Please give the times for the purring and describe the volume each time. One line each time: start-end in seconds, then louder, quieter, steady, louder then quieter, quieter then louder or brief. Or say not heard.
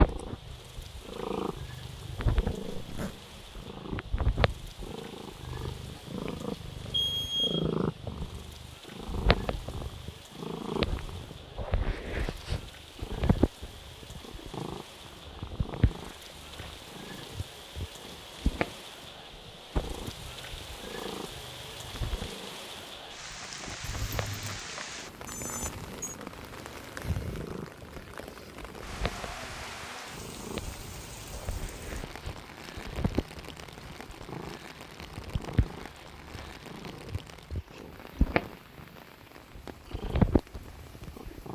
0.0-41.5 quieter then louder.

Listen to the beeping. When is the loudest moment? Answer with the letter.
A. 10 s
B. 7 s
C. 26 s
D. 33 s
B.